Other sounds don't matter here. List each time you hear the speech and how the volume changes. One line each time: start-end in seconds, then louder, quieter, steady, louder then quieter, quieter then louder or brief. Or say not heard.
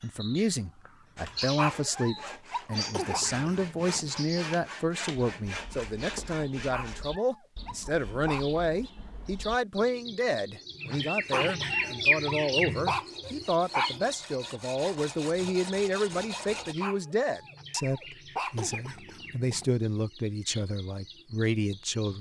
0.0-22.1 steady.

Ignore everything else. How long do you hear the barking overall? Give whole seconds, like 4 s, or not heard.
8 s.